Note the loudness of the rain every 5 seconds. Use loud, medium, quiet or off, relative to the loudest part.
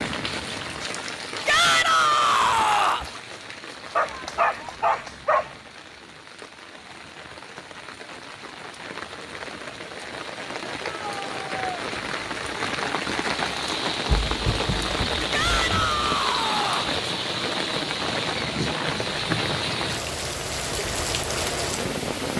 medium, quiet, loud, loud, loud.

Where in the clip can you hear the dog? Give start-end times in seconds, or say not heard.
4.0-5.5, 14.1-16.0.